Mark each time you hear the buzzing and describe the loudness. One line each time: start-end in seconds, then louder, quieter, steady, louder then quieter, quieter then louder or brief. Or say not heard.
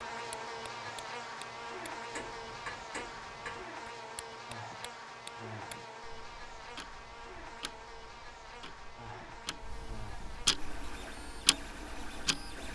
0.0-12.7 quieter.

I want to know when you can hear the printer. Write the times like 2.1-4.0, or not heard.
10.6-12.7.